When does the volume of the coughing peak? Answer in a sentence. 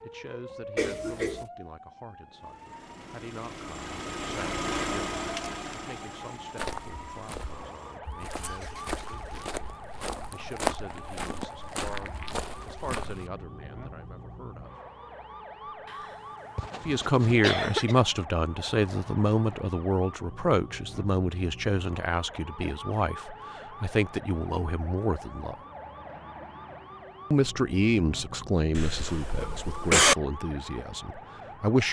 The loudest moment of the coughing is at 30 seconds.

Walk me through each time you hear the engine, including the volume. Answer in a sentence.
You can hear the engine from 2.3 to 9.4 s, getting louder then quieter.